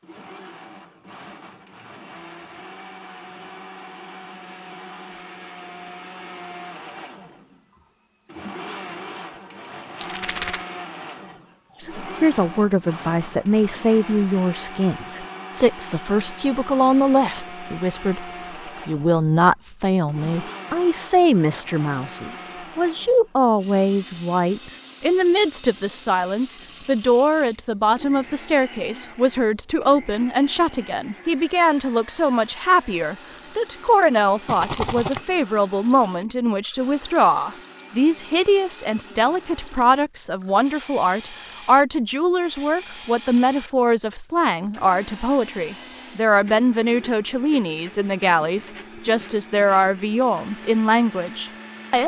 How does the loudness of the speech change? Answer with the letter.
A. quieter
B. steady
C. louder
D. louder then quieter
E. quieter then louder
B.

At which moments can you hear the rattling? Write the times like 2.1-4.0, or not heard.
9.9-10.7, 34.5-35.2.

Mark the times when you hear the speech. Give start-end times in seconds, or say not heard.
11.8-52.0.